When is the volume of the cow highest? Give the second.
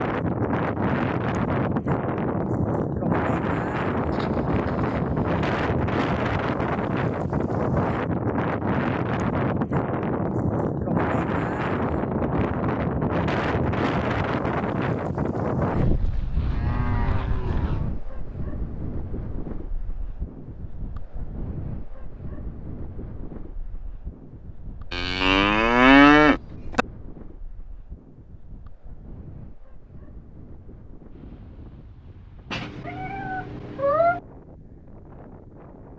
26 s.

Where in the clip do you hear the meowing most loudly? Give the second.
34 s.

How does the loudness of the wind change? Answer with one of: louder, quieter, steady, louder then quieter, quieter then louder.
quieter.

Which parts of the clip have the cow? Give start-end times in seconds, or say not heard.
4.1-5.3, 15.8-17.9, 24.9-26.9.